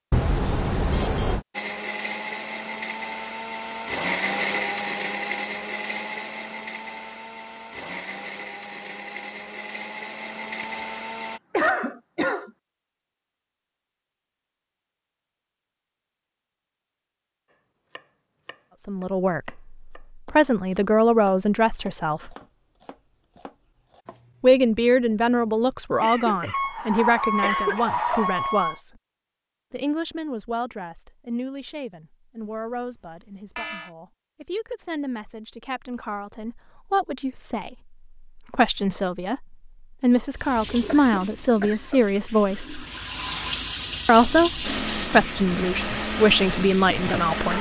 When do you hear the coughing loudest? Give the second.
12 s.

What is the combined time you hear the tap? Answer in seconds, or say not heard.
7 s.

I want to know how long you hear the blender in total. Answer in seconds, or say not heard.
13 s.